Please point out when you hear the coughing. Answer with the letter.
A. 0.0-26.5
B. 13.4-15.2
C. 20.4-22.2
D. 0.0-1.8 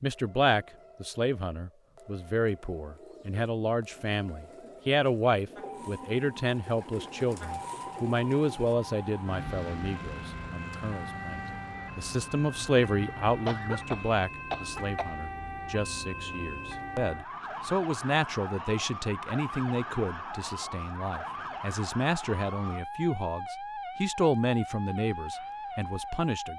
B.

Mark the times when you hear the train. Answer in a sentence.
You can't hear the train here.